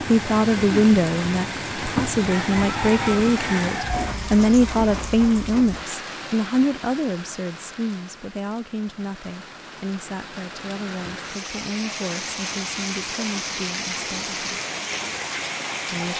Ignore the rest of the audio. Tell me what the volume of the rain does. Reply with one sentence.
The volume of the rain goes down, then up.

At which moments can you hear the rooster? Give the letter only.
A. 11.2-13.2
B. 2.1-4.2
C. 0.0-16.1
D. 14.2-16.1
B.